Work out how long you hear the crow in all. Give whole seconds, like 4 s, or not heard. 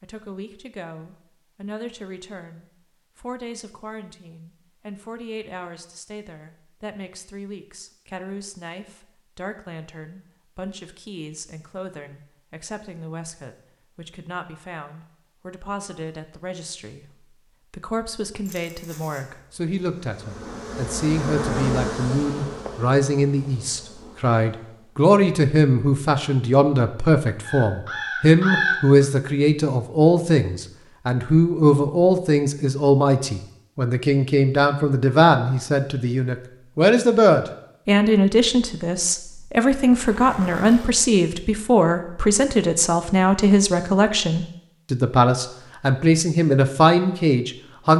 2 s.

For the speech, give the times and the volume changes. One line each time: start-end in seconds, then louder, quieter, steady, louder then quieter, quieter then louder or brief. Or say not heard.
0.0-47.9 louder.